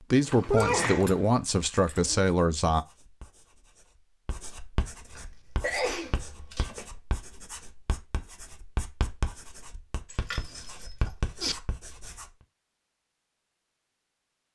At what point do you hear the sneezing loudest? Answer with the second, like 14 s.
1 s.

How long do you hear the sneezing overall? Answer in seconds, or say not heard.
2 s.